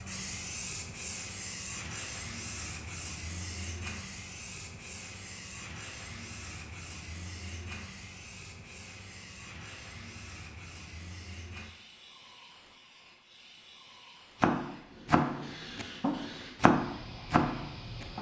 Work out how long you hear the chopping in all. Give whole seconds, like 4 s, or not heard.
4 s.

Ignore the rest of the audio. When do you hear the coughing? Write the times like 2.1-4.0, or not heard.
not heard.